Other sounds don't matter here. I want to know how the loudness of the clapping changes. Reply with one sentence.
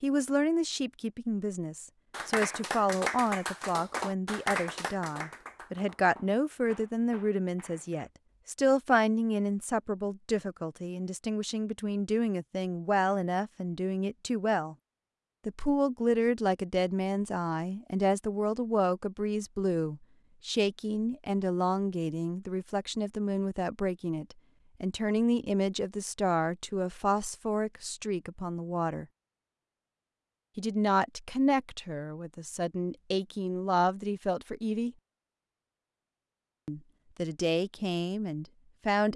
The loudness of the clapping goes down.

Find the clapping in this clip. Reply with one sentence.
You can hear the clapping from 2.1 to 8.1 s.